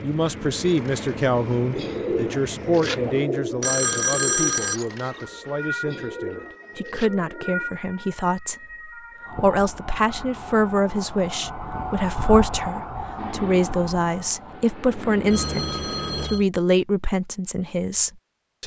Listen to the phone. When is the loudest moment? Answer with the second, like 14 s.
4 s.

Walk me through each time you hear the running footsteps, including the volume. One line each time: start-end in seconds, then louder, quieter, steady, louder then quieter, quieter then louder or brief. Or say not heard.
not heard.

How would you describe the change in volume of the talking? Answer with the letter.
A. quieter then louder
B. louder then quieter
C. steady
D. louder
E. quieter
A.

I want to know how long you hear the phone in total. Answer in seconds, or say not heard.
2 s.